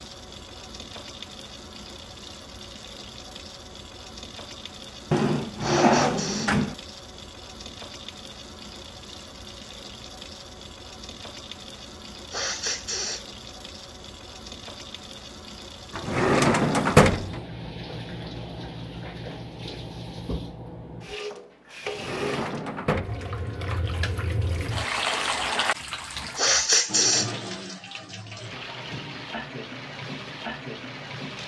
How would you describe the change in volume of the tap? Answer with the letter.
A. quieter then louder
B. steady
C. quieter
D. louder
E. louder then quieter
D.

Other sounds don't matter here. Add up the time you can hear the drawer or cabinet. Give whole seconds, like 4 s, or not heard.
4 s.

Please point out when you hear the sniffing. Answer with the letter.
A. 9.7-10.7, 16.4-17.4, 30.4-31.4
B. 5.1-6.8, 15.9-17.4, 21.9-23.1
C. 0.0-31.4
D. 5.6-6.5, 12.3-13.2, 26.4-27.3
D.